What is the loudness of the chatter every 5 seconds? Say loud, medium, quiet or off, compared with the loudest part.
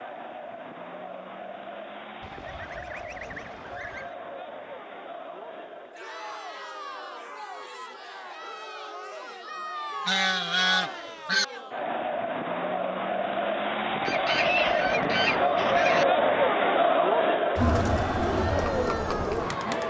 quiet, quiet, medium, loud.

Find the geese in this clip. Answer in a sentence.
You can hear the geese from 2.2 to 4.2 s, from 10.1 to 11.4 s and from 14.1 to 16.1 s.